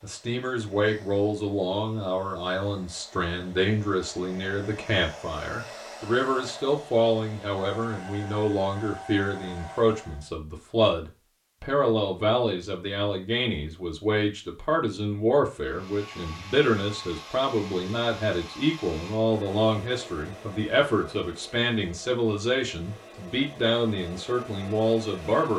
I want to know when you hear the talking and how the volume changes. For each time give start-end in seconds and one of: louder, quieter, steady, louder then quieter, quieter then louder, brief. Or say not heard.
0.0-25.5 steady.